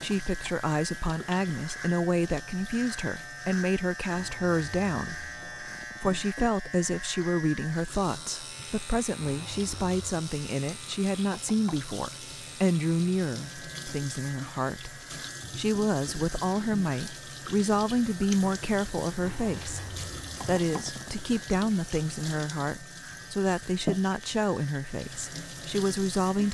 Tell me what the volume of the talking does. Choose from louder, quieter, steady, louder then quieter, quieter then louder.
steady.